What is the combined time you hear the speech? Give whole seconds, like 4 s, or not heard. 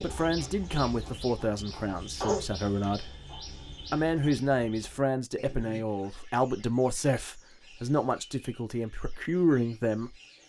9 s.